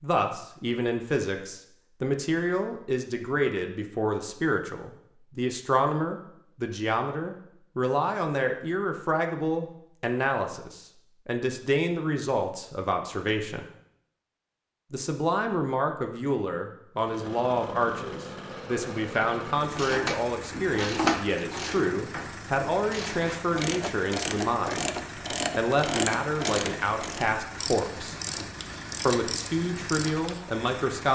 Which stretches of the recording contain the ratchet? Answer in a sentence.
The ratchet can be heard from 19.7 to 30.4 s.